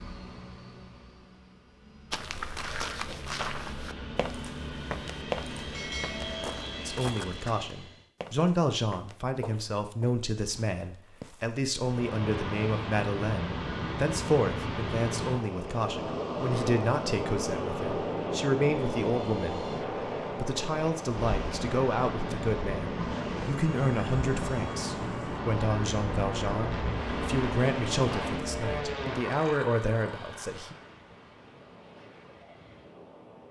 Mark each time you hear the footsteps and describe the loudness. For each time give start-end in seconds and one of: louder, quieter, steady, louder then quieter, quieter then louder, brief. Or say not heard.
2.1-11.6 quieter.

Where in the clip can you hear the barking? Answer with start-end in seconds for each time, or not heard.
not heard.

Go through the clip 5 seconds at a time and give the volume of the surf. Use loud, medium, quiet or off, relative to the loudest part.
off, off, loud, loud, loud, loud, quiet.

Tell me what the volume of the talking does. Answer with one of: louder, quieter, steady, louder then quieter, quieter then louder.
steady.